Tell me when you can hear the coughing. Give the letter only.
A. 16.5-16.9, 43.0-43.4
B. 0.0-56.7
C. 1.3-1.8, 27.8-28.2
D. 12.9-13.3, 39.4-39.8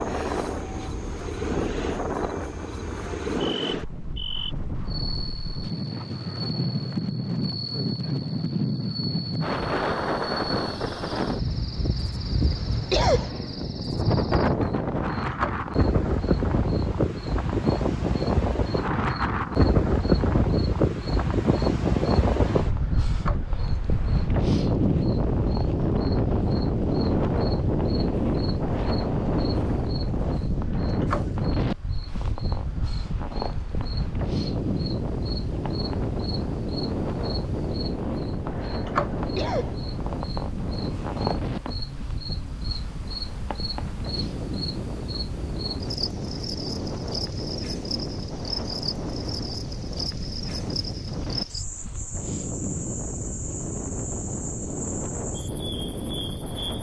D.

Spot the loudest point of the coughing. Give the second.
13 s.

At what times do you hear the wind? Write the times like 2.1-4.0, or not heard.
0.0-56.7.